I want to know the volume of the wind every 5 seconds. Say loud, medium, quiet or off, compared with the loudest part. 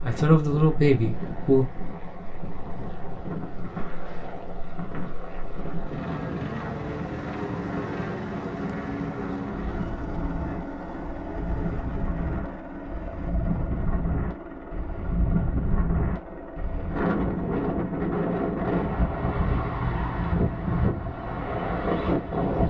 medium, medium, medium, loud, loud.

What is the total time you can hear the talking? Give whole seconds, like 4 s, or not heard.
2 s.